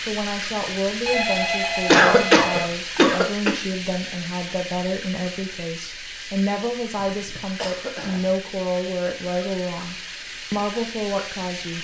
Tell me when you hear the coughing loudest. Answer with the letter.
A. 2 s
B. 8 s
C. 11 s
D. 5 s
A.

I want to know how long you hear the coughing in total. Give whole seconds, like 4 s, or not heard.
3 s.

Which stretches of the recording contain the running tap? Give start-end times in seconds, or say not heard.
0.0-11.7.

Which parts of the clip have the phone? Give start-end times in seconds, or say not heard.
1.1-2.6.